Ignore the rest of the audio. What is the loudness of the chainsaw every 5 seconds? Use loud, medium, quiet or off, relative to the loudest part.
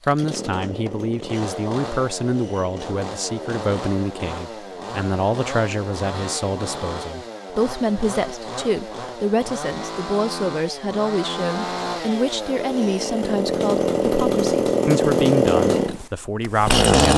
quiet, quiet, medium, loud.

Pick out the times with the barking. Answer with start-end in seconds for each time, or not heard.
not heard.